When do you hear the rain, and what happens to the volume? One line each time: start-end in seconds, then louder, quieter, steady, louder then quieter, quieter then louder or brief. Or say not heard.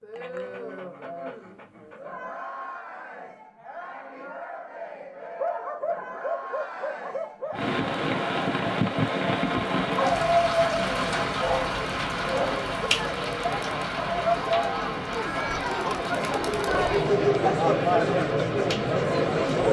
7.5-19.6 quieter.